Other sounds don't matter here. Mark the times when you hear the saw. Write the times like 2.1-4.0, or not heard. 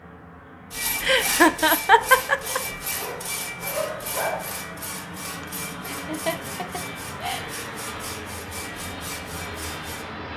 0.7-10.1.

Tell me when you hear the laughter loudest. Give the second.
2 s.